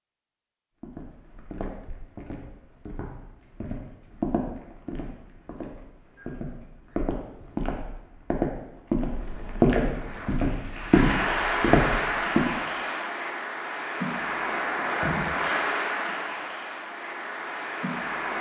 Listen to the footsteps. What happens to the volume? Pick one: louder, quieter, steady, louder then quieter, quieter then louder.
louder.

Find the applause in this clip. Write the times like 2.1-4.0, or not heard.
9.8-18.3.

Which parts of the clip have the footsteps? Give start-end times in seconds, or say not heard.
0.8-12.5.